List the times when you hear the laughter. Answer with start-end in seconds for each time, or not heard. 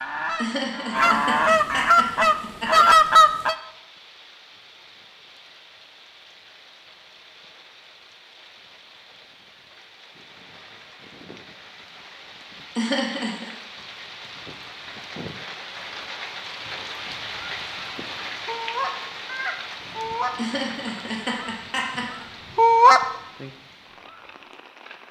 0.3-2.9, 12.8-13.5, 20.4-22.2.